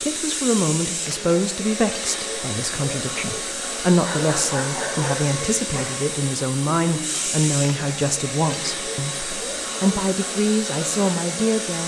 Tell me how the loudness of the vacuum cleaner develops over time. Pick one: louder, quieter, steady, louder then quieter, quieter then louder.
steady.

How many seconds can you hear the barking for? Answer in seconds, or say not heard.
2 s.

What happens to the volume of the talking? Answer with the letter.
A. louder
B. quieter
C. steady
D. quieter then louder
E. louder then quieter
C.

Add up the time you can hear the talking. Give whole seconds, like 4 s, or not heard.
12 s.